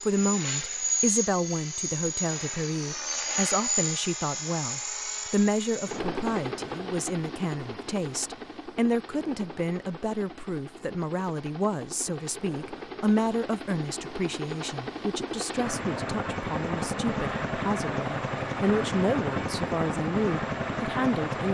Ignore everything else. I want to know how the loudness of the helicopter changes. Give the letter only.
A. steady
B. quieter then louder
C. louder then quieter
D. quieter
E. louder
B.